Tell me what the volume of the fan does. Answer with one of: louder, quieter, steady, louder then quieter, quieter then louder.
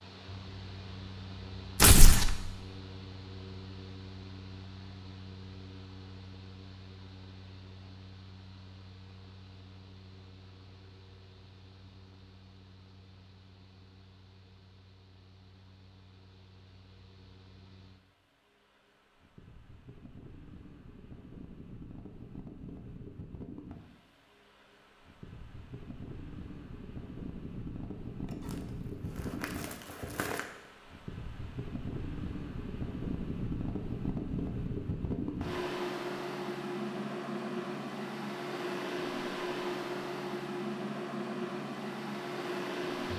quieter then louder.